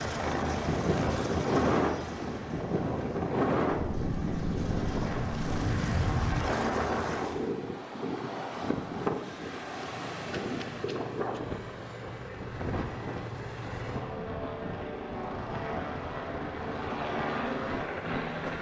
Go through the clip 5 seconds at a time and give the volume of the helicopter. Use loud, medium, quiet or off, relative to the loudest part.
loud, loud, medium, loud.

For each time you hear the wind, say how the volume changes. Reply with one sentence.
The wind can be heard from 0.1 to 18.5 s, getting quieter.